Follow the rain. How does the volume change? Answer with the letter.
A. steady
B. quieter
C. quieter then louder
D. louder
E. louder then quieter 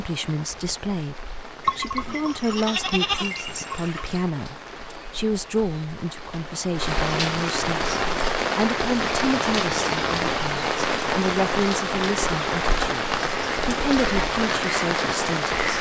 D.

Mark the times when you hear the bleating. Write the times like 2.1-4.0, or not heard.
1.6-4.2.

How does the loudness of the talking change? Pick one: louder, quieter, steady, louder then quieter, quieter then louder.
steady.